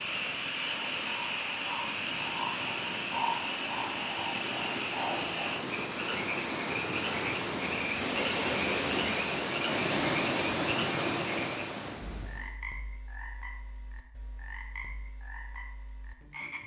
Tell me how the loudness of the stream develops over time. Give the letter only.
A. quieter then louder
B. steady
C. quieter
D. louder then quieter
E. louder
E.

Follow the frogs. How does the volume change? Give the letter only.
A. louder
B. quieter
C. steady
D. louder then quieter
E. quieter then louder
B.